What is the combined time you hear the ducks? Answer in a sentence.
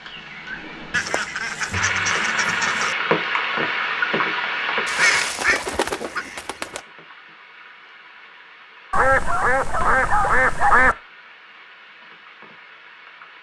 You can hear the ducks for 6 seconds altogether.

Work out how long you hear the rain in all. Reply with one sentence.
You can hear the rain for 13 seconds altogether.